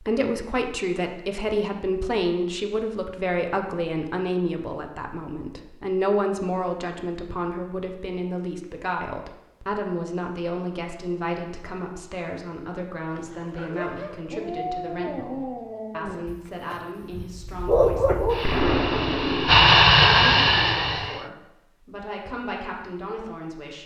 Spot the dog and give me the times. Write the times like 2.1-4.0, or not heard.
13.1-18.6.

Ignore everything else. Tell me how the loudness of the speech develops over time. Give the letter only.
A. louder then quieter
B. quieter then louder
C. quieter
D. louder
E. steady
C.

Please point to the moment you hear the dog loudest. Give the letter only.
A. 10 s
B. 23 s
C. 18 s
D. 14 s
C.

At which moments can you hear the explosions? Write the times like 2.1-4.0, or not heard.
18.4-19.8.